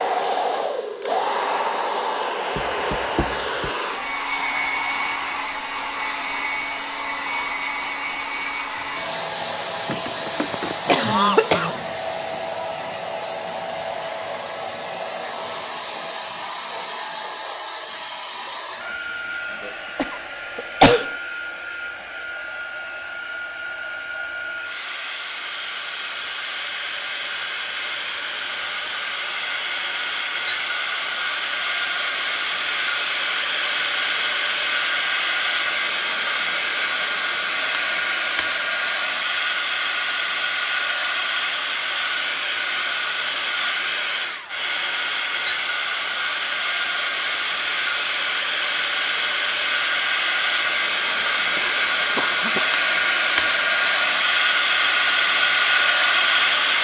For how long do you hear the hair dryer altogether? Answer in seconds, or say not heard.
57 s.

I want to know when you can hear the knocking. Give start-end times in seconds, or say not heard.
2.5-3.7.